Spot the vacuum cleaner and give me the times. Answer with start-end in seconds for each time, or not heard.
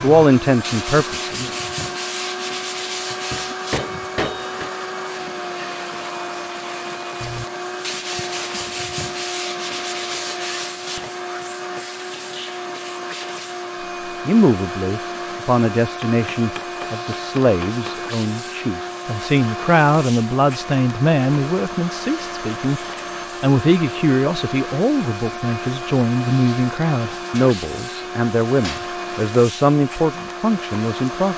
0.0-31.3.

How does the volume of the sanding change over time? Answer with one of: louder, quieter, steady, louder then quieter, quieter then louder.
quieter then louder.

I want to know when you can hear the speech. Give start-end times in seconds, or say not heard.
0.0-1.5, 14.2-22.8, 23.4-31.3.